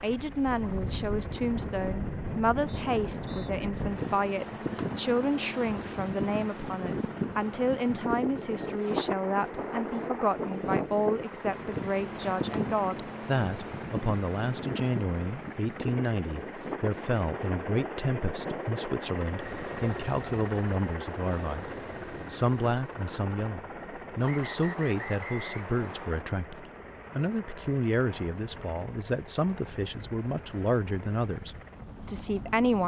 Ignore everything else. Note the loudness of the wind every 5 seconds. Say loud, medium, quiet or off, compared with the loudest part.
loud, loud, loud, medium, quiet, quiet, quiet.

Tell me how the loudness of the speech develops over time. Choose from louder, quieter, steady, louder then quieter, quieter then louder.
steady.